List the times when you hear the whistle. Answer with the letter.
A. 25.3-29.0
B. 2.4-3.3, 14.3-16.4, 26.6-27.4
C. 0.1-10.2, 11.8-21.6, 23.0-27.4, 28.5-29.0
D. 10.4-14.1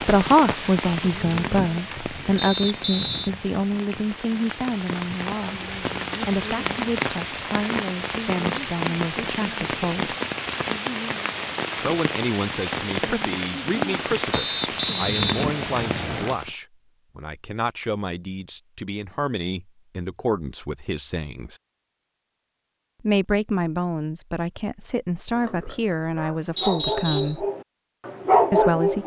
B.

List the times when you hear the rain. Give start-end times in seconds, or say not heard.
0.0-16.6.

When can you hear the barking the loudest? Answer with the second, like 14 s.
28 s.